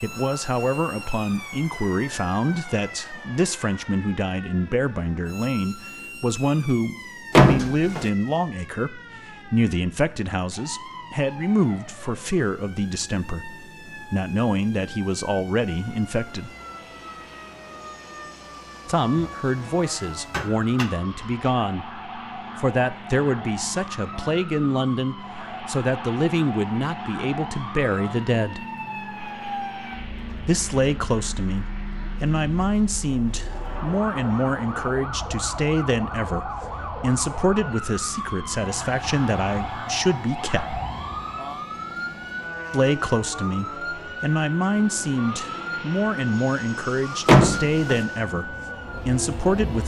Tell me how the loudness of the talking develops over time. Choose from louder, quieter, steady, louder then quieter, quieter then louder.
steady.